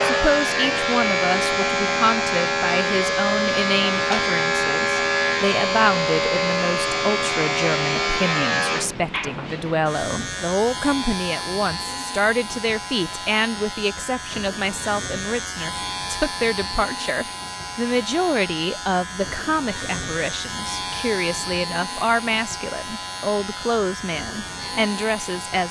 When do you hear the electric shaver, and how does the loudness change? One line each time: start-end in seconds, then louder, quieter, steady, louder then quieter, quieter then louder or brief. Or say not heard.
0.0-25.6 quieter.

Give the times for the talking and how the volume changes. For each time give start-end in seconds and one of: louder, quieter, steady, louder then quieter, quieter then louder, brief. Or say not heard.
0.1-25.6 steady.